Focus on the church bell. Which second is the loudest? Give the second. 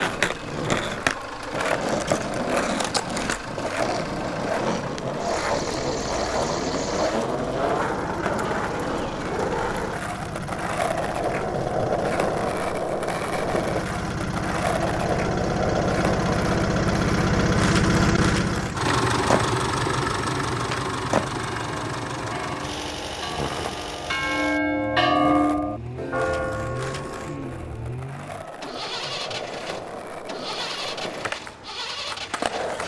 25 s.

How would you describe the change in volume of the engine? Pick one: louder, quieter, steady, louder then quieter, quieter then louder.
louder then quieter.